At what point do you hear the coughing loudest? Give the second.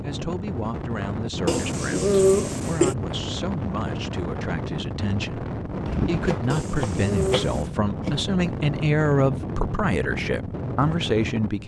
2 s.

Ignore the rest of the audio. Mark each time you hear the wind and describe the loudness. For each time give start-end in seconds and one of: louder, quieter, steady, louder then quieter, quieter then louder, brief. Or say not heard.
0.0-11.6 steady.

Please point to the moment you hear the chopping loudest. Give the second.
6 s.